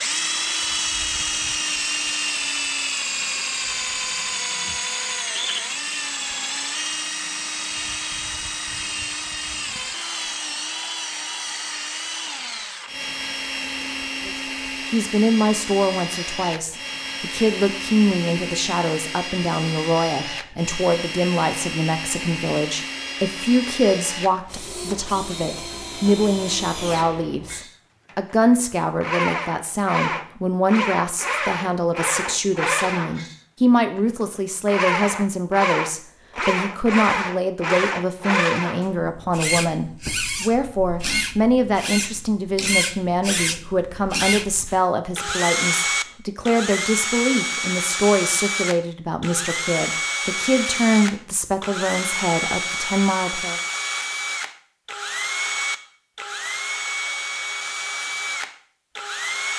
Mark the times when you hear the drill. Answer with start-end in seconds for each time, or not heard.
0.0-59.5.